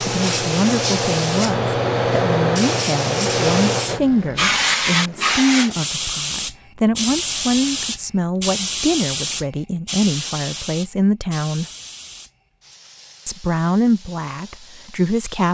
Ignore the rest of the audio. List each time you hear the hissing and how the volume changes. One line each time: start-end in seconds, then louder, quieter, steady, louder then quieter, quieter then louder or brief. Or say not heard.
0.0-15.4 quieter.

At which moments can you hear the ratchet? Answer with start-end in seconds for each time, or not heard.
not heard.